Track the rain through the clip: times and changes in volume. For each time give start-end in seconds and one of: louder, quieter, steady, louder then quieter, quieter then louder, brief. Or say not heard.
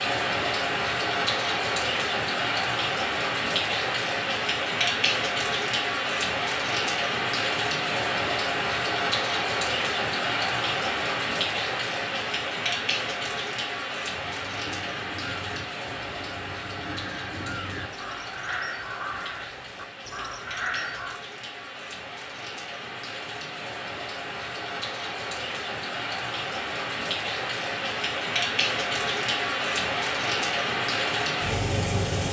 0.0-32.2 quieter then louder.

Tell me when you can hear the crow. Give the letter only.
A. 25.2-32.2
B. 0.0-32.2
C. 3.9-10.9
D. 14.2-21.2
D.